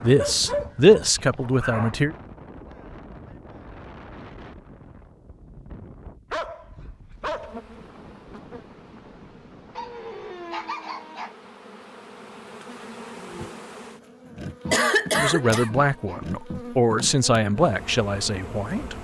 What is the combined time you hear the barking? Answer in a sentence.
You can hear the barking for 6 seconds altogether.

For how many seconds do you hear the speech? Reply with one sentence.
The speech can be heard for 6 seconds in total.